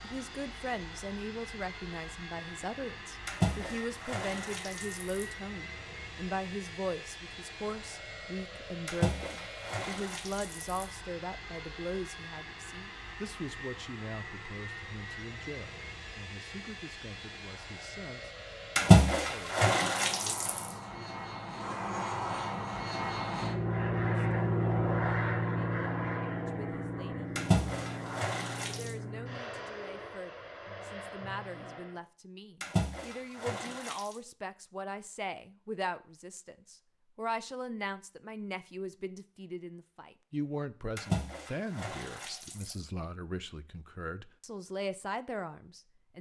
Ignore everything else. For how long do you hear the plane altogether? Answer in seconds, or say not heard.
32 s.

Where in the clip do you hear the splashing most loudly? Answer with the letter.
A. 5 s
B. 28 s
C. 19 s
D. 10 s
C.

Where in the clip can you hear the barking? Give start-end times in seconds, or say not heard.
not heard.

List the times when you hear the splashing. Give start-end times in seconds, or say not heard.
3.2-5.2, 8.8-10.8, 18.8-20.6, 27.4-28.9, 32.6-34.1, 41.0-42.8.